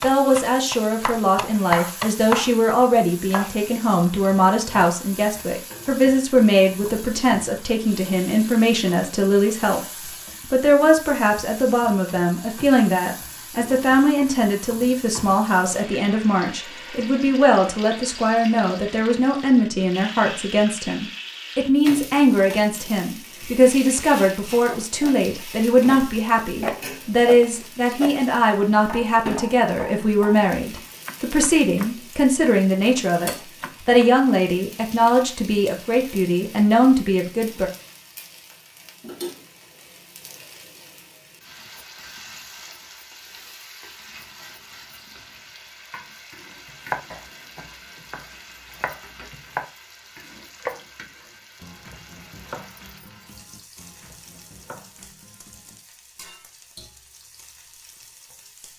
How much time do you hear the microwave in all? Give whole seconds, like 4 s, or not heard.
not heard.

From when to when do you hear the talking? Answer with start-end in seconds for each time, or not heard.
0.0-9.8, 10.5-37.7.